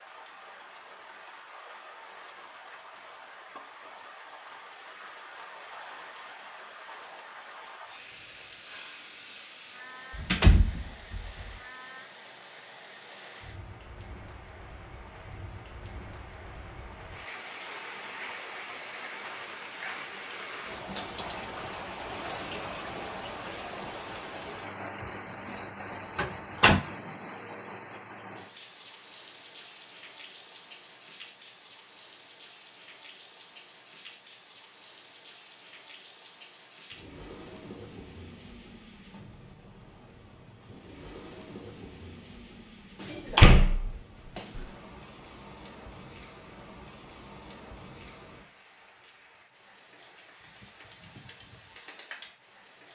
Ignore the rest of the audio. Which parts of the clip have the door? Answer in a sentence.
You can hear the door from 10.2 to 11.5 s, from 26.1 to 26.8 s and from 43.1 to 44.6 s.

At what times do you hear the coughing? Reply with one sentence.
The coughing can't be heard in this clip.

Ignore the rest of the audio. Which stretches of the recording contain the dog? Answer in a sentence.
You can't hear the dog here.